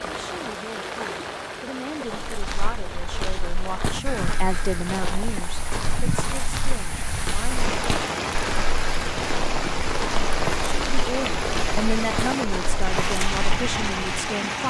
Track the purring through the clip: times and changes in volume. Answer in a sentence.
You can't hear the purring here.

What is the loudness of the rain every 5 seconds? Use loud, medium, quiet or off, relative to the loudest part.
medium, loud, loud.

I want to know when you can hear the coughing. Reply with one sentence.
You can't hear the coughing here.